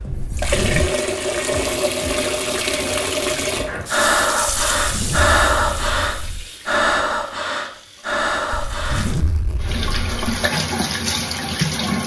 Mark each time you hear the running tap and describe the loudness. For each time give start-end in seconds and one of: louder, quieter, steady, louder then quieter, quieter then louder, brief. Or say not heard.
0.0-12.0 quieter then louder.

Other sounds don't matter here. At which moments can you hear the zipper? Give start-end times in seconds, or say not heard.
0.3-0.9, 4.5-6.5, 8.5-10.2.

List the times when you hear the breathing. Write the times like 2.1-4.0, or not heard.
3.6-9.1.